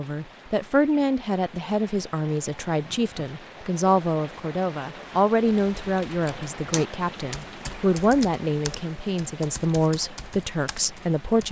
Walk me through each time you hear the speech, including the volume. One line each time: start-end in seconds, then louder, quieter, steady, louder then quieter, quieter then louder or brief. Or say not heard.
0.0-11.4 steady.